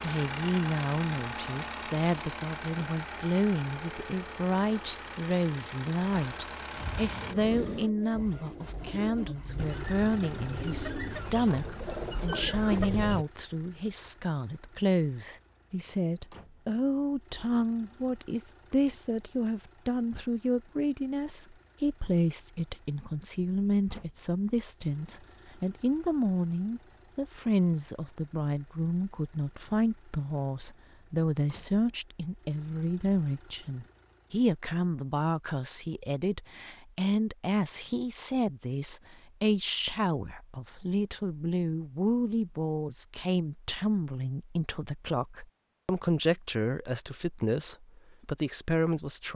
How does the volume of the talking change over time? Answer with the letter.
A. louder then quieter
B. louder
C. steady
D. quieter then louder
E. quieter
C.